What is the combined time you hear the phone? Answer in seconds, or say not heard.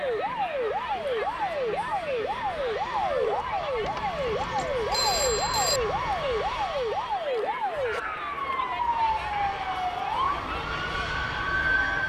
2 s.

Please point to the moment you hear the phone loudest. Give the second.
5 s.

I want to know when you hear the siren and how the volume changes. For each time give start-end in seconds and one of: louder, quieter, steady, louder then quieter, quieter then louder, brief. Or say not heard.
0.0-12.0 steady.